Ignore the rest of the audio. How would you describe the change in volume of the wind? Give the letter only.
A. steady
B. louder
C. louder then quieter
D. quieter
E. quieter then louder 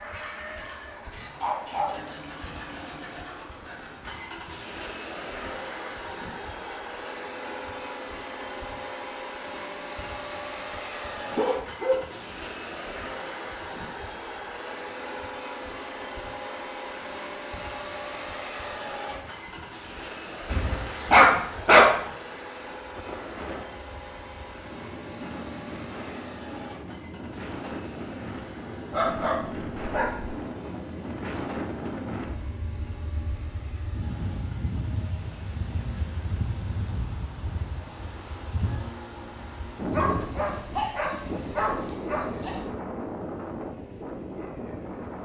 B.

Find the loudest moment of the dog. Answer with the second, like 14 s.
22 s.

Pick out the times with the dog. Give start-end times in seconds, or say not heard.
1.4-2.0, 11.3-12.2, 20.5-22.1, 28.9-30.3, 39.9-42.7.